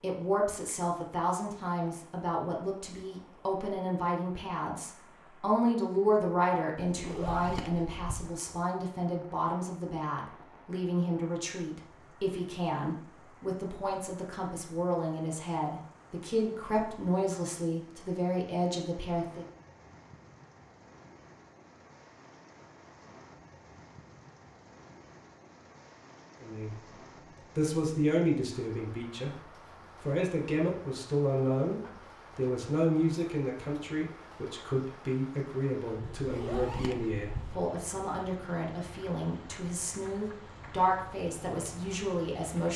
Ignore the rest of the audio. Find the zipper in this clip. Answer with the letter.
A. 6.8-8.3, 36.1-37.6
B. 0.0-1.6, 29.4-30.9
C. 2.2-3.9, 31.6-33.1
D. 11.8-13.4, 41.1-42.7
A.